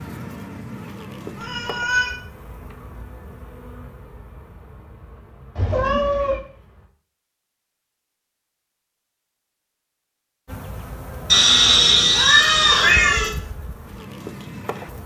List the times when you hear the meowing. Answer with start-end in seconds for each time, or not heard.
1.4-2.1, 5.5-6.4, 11.3-13.3.